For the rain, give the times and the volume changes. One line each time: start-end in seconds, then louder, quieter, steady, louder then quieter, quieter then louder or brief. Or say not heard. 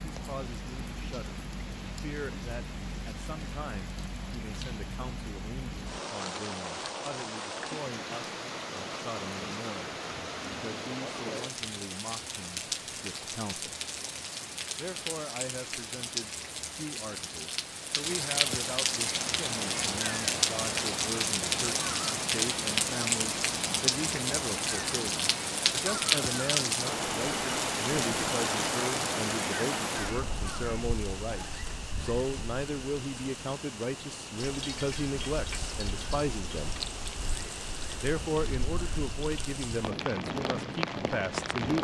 0.0-41.7 louder then quieter.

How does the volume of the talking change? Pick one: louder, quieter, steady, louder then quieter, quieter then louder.
louder.